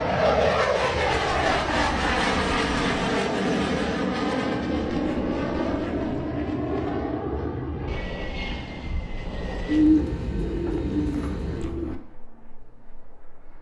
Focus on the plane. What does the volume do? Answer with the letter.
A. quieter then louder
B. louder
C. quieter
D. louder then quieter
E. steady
C.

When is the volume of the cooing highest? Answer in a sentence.
The loudest moment of the cooing is at 10 seconds.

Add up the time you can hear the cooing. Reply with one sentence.
The cooing can be heard for 6 seconds in total.